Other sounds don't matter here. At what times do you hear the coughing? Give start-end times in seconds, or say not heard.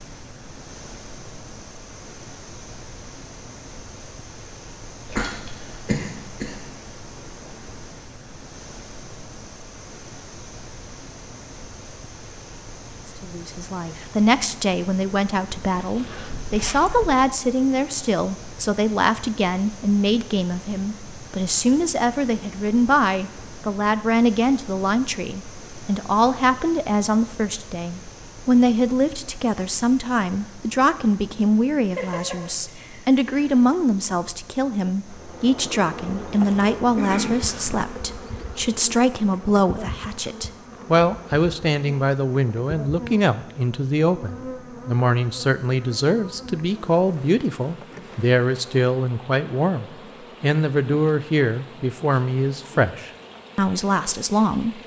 5.1-6.6, 31.9-33.6, 37.0-37.4.